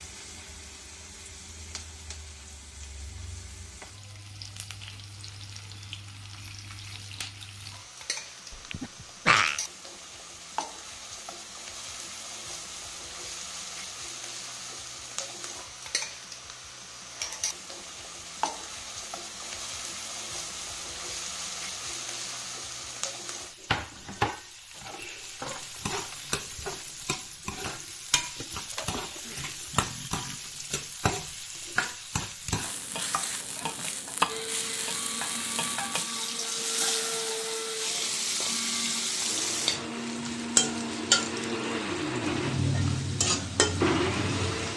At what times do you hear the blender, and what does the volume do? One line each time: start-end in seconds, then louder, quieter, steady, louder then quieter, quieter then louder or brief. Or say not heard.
34.2-44.7 louder.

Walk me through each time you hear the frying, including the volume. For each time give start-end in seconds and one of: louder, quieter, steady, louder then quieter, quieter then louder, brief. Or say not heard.
0.0-44.7 louder.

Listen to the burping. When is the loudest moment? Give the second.
9 s.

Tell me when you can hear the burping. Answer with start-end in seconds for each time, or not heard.
8.5-9.6, 28.7-30.5.